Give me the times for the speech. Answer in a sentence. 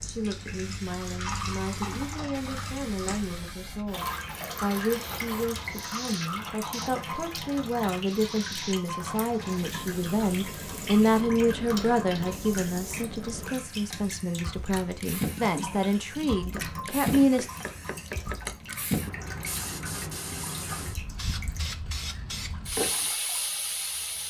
The speech can be heard from 0.0 to 17.5 s.